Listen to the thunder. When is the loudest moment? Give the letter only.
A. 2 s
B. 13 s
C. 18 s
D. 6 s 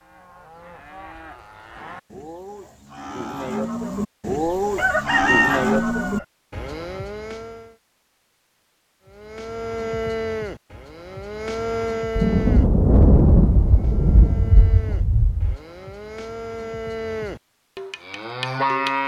B.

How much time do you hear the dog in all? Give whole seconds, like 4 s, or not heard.
not heard.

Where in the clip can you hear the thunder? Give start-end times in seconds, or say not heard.
12.2-15.6.